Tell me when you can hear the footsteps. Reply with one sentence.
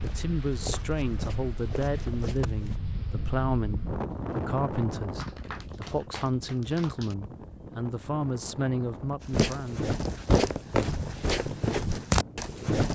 You can hear the footsteps from 0.0 to 2.8 s and from 9.3 to 12.9 s.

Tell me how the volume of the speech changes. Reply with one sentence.
The volume of the speech stays about the same.